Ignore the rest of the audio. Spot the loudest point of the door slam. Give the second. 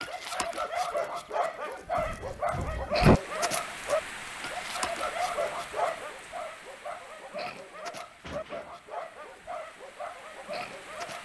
3 s.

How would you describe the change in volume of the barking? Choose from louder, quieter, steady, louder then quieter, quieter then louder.
quieter.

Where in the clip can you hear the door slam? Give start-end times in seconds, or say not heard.
1.9-3.2, 8.2-8.8.